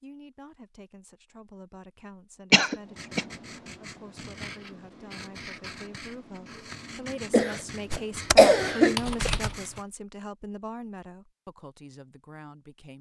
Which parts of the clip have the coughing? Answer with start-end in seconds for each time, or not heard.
2.5-3.2, 7.3-9.3.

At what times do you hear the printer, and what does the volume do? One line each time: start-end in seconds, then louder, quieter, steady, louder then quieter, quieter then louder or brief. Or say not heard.
not heard.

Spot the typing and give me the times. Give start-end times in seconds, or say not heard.
7.9-9.8.